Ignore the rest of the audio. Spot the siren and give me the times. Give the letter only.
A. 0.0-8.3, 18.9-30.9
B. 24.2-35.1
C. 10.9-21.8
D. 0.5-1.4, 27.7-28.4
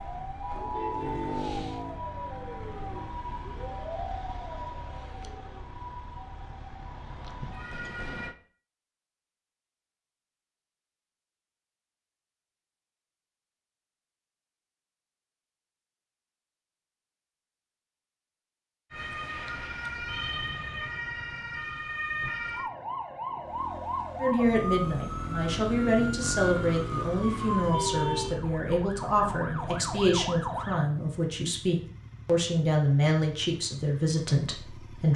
A.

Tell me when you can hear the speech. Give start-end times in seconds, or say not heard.
24.2-35.1.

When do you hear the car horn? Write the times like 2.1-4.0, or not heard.
0.5-1.4, 27.7-28.4.